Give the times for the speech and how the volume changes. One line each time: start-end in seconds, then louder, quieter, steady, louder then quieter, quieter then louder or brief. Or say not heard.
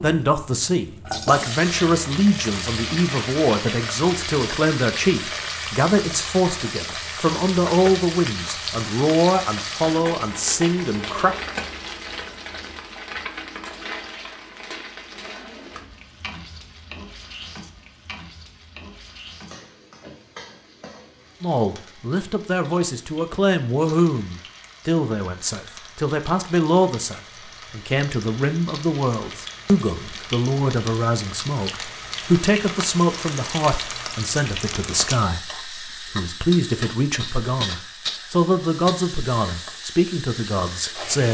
0.0-11.3 steady
21.4-41.3 steady.